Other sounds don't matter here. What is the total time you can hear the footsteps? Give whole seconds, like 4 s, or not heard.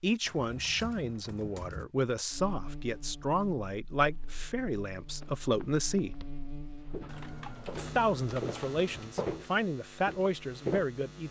6 s.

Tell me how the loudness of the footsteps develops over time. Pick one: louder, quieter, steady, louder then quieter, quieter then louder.
louder then quieter.